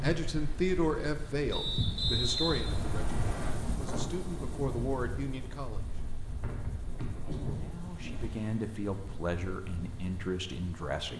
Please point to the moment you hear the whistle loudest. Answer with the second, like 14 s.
2 s.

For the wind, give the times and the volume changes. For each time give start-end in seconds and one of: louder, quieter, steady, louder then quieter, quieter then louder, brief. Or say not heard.
0.0-11.1 quieter.